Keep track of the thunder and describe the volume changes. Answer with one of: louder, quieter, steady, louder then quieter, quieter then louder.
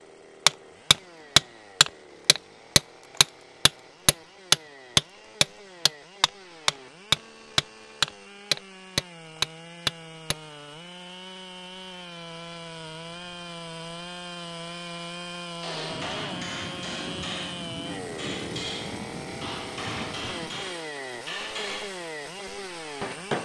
steady.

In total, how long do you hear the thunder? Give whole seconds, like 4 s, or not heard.
5 s.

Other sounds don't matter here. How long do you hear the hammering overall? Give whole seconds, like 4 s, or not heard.
18 s.